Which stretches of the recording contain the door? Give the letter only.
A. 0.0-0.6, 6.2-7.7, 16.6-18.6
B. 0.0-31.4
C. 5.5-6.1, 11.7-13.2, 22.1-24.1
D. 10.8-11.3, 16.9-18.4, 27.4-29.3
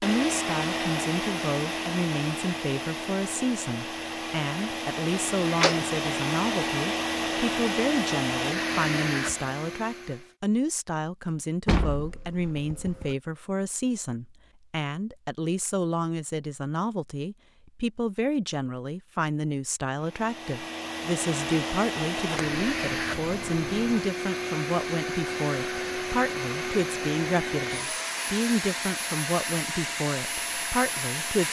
C.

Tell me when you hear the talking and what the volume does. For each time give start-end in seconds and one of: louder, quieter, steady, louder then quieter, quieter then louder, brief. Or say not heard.
0.0-31.4 steady.